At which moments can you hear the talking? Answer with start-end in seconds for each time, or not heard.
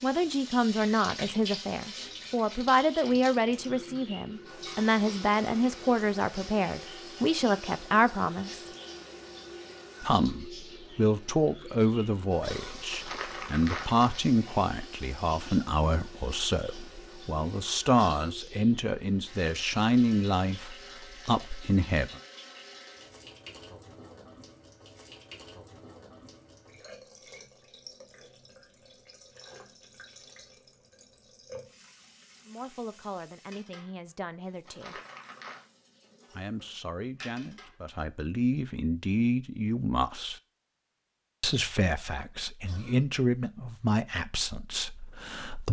0.0-8.7, 10.0-22.2, 32.5-35.0, 36.3-40.4, 41.4-45.6.